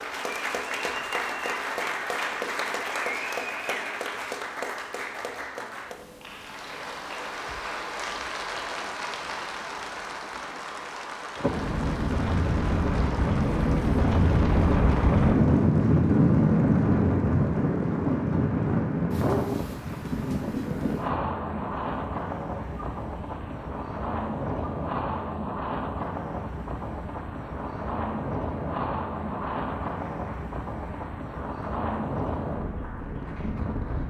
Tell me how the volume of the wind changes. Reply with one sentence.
The volume of the wind goes down.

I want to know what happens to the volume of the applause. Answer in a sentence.
The volume of the applause goes down.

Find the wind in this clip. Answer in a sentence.
You can hear the wind from 11.3 to 34.0 s.